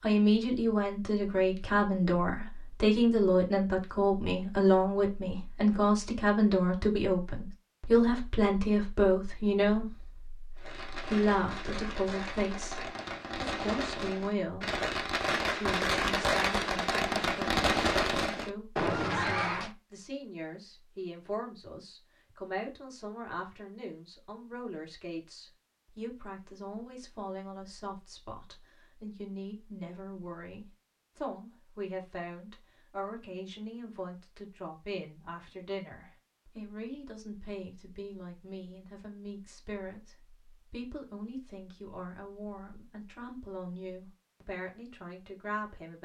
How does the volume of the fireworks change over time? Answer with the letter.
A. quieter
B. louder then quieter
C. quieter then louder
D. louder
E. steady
D.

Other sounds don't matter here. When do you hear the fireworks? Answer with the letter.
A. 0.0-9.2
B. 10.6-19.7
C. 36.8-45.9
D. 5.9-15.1
B.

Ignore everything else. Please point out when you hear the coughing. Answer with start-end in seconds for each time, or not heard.
not heard.